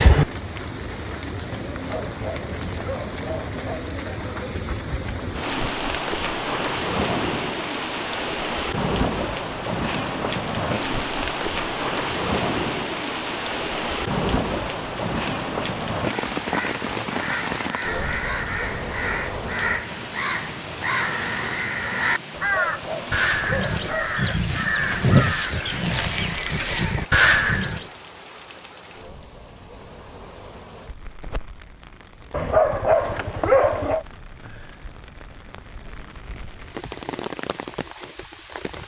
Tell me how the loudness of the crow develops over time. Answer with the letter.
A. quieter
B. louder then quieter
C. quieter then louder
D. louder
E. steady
D.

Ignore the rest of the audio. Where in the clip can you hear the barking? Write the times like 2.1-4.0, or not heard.
1.7-3.9, 22.3-24.4, 32.3-34.0.